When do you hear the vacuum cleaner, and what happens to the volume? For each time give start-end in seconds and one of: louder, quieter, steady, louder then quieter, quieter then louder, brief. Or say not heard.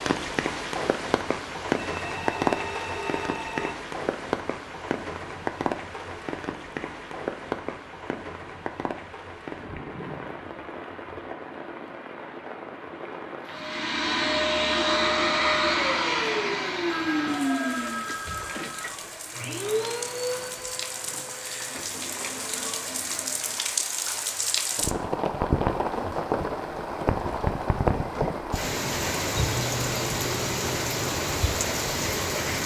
13.5-23.7 quieter.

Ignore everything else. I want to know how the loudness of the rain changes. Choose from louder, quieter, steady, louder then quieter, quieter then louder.
quieter then louder.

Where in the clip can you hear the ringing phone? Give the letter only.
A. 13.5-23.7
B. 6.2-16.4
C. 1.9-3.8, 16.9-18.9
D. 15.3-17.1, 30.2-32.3
C.